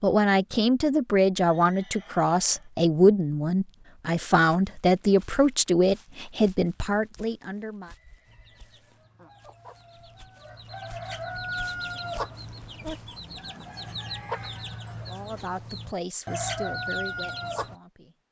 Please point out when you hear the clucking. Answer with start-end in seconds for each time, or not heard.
8.2-17.8.